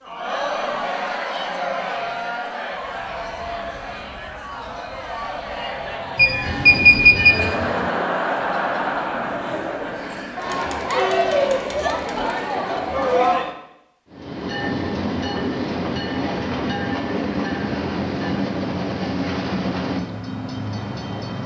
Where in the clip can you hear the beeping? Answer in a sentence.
You can hear the beeping from 6.2 to 7.3 s.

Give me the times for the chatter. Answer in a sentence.
You can hear the chatter from 0.0 to 13.6 s.